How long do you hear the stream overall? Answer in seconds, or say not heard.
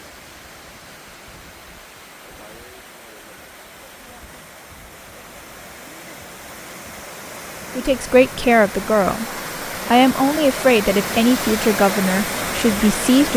13 s.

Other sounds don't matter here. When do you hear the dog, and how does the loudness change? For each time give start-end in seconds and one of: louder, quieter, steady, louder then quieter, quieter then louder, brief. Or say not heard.
not heard.